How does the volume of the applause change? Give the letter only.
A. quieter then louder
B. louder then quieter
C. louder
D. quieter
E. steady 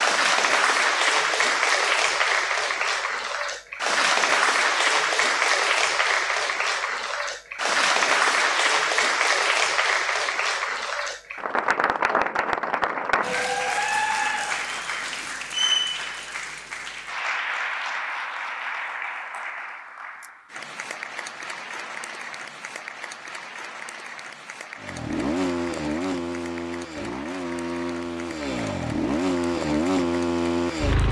D.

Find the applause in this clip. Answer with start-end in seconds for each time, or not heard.
0.0-31.0.